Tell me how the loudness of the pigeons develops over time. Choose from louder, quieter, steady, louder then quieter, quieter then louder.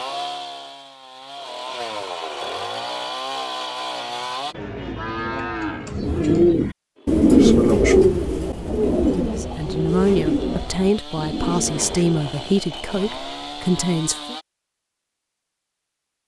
louder then quieter.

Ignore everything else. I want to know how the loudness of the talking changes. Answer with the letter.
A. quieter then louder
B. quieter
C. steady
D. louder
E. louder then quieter
C.